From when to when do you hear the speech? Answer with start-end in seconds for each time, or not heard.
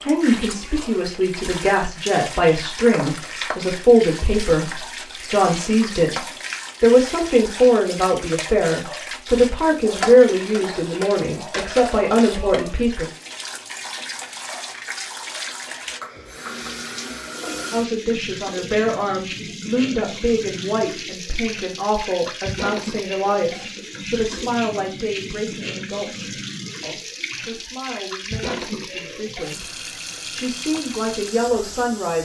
0.1-13.1, 17.7-32.2.